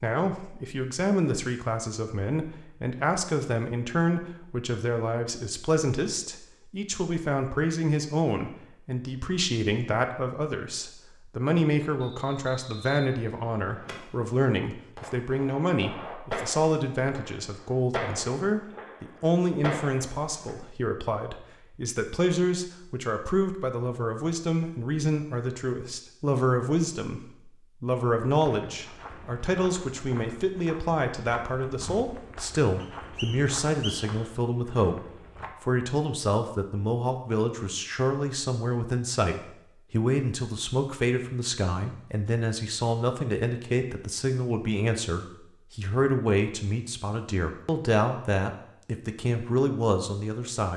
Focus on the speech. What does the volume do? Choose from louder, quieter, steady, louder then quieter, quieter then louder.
steady.